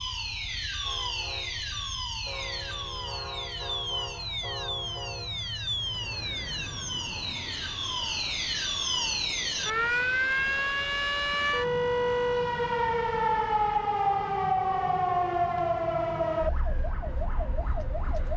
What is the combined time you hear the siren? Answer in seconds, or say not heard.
18 s.